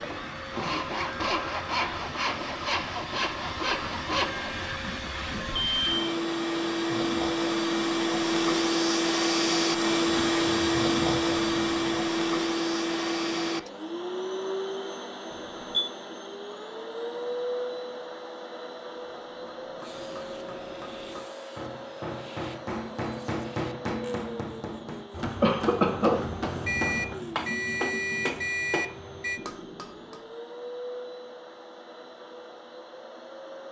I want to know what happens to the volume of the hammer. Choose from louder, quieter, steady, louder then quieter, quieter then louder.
louder.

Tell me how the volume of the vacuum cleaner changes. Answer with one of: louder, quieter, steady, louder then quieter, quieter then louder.
louder then quieter.